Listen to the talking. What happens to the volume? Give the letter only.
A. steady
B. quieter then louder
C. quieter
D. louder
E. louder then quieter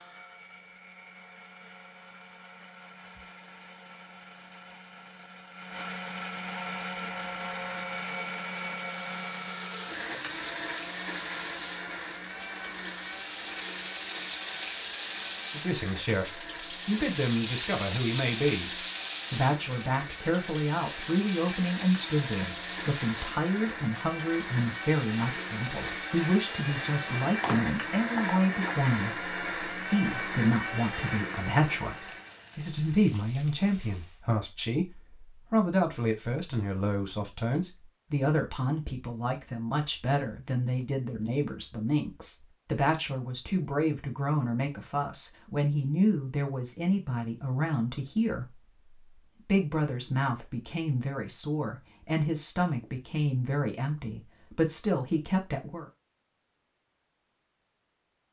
A.